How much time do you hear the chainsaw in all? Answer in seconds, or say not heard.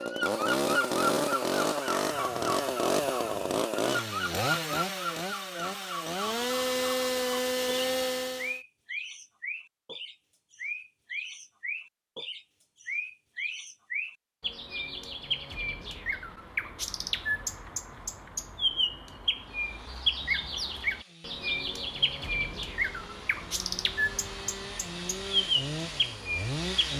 16 s.